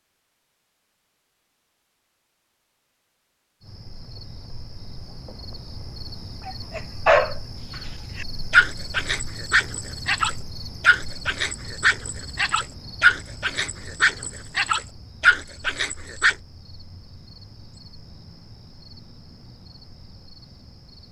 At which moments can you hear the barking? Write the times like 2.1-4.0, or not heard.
6.5-7.3, 8.2-16.4.